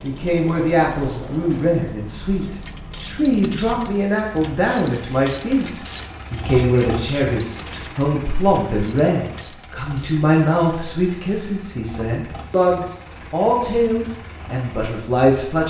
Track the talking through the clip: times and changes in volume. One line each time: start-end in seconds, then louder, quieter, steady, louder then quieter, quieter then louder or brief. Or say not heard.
0.0-15.6 steady.